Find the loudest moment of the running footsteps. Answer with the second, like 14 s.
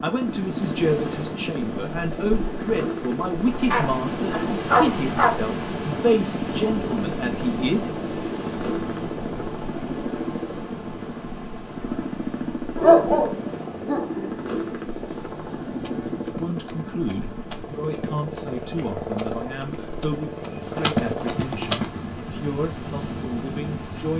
21 s.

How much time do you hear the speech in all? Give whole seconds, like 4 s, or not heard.
16 s.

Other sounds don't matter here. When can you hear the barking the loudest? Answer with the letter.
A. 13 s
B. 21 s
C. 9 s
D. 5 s
A.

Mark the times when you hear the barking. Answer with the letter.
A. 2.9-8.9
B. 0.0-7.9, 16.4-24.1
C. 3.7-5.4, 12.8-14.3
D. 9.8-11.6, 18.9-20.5
C.